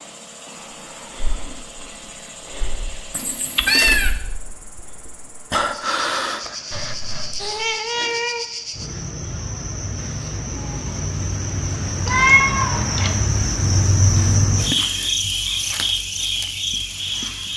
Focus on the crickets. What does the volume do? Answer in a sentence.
The volume of the crickets goes up.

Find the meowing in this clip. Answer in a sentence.
You can hear the meowing from 3.1 to 4.2 s, from 7.4 to 8.4 s and from 12.1 to 13.2 s.